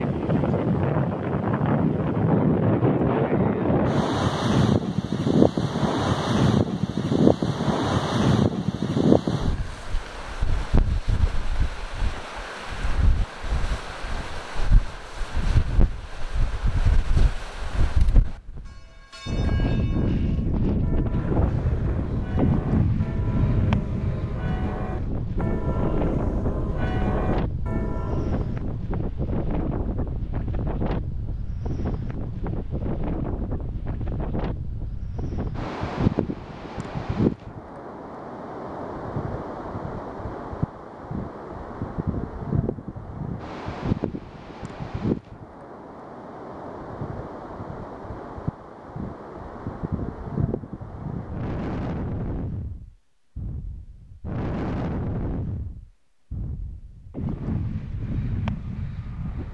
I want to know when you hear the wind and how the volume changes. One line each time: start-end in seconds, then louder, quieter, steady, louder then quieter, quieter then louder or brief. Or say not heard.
0.0-59.4 quieter.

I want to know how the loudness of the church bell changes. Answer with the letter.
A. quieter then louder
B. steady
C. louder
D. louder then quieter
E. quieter
C.